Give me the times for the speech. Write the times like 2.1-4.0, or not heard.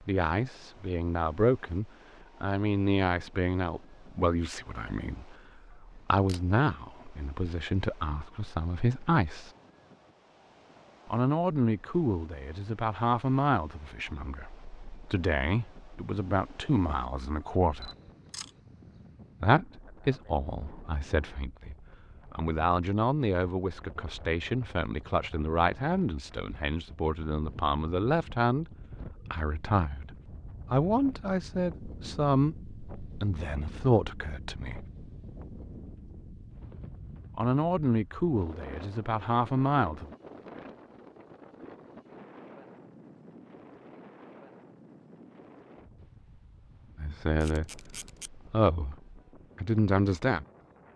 0.0-9.5, 11.1-17.9, 19.4-28.6, 29.3-34.9, 37.4-40.1, 47.0-50.5.